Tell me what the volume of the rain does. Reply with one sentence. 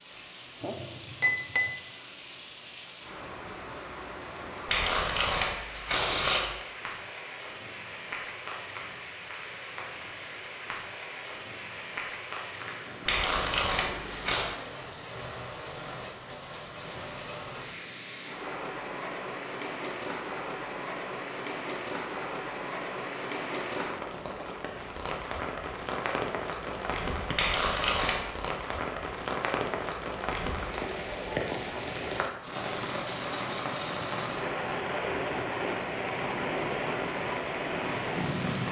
The volume of the rain goes up.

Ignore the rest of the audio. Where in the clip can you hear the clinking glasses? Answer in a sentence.
The clinking glasses can be heard from 0.6 to 1.7 s and from 27.3 to 27.9 s.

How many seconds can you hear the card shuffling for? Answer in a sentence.
You can hear the card shuffling for 4 seconds altogether.